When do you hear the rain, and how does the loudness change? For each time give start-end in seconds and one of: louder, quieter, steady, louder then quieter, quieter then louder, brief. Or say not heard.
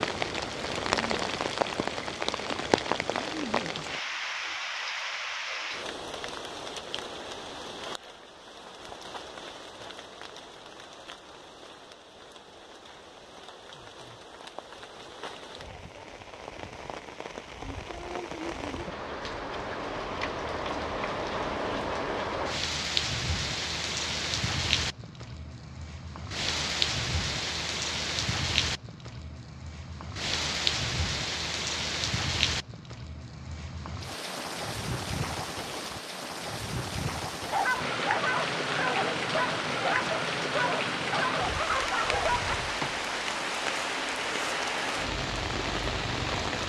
0.0-46.6 quieter then louder.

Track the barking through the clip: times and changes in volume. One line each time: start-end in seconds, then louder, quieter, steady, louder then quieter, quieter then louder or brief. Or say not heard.
37.5-43.0 steady.